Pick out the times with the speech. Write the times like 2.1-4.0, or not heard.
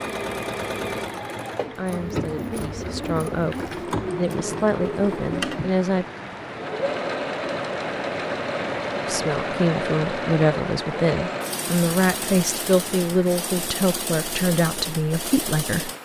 1.6-6.0, 9.1-15.9.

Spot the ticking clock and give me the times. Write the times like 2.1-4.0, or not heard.
not heard.